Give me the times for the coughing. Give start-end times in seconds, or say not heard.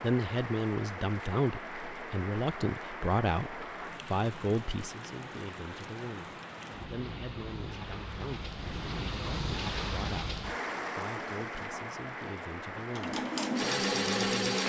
not heard.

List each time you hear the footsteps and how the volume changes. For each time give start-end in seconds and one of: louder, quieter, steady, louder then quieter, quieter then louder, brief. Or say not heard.
not heard.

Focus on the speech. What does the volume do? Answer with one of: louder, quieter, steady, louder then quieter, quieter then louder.
quieter.